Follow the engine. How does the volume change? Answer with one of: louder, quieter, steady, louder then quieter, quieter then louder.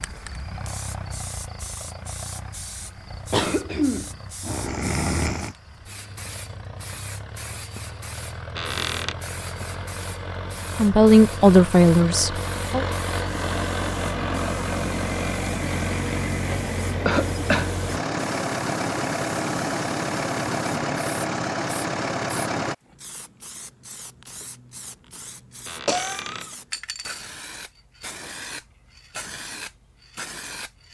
louder.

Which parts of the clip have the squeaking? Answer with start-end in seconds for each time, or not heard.
8.6-9.2, 25.6-26.6.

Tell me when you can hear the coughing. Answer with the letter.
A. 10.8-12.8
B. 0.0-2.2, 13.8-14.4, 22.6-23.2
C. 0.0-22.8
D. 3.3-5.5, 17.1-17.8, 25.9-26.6
D.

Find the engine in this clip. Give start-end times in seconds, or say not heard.
0.0-22.8.